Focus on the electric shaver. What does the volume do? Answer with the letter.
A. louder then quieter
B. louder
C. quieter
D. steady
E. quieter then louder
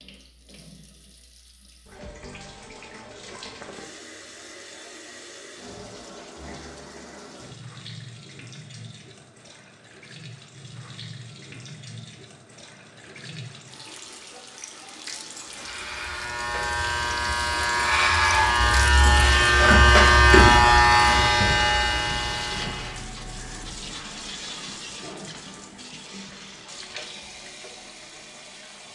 A.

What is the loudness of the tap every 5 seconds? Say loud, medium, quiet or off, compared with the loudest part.
medium, medium, medium, loud, loud, medium.